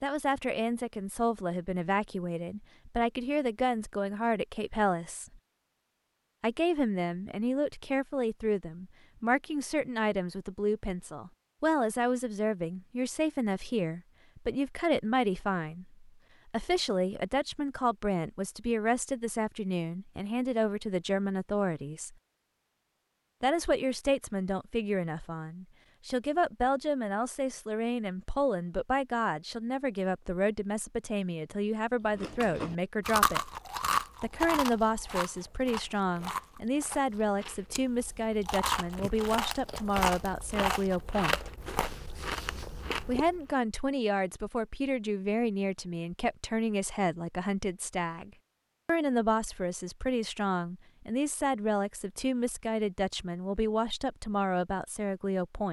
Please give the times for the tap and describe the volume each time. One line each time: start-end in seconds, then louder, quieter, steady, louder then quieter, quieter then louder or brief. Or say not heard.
not heard.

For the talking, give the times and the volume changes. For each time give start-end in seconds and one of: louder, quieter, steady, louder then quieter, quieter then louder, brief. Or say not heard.
0.0-5.4 steady
6.4-22.1 steady
23.4-33.5 steady
34.2-41.5 steady
43.0-55.6 steady.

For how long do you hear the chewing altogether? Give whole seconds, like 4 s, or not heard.
11 s.